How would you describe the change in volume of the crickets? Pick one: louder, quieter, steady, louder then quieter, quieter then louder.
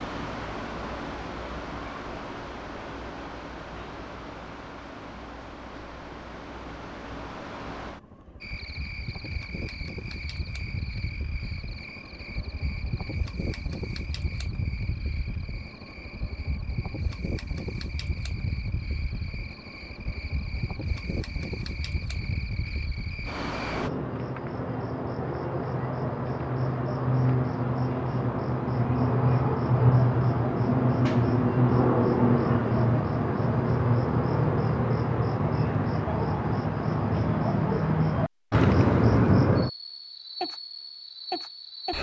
louder.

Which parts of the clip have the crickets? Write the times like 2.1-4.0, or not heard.
8.4-41.9.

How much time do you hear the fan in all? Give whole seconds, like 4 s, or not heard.
24 s.